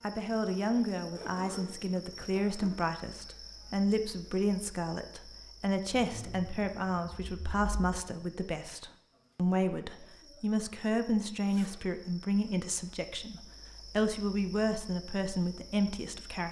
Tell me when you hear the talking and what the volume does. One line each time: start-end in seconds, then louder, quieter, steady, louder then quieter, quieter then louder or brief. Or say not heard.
0.0-16.4 steady.